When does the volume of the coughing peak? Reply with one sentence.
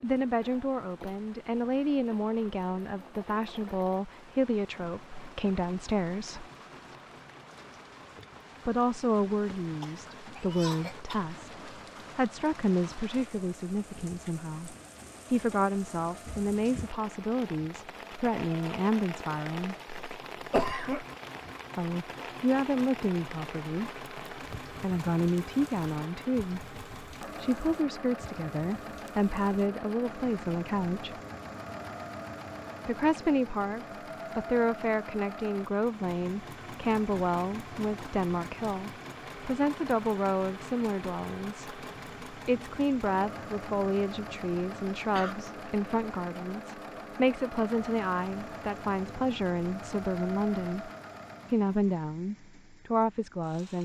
The loudest moment of the coughing is at 21 seconds.